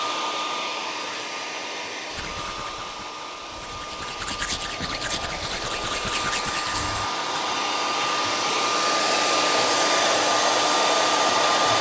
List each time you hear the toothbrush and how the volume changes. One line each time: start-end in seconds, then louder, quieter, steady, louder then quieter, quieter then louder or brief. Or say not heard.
2.1-7.4 louder.